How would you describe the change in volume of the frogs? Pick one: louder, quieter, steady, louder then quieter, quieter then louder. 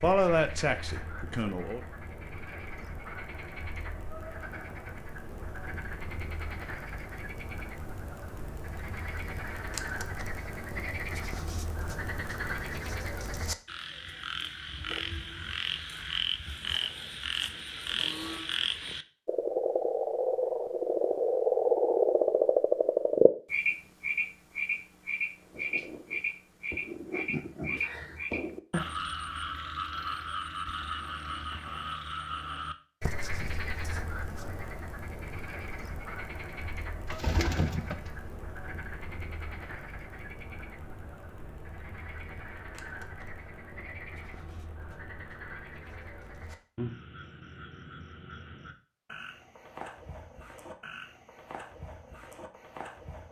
louder then quieter.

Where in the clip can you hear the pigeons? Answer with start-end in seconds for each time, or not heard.
37.0-38.4.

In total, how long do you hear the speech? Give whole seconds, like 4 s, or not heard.
2 s.